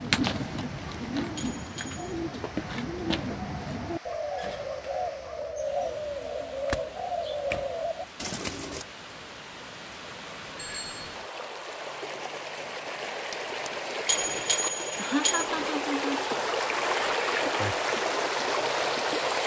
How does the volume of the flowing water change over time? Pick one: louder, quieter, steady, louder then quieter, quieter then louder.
louder.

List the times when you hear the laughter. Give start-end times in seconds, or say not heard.
14.9-16.2.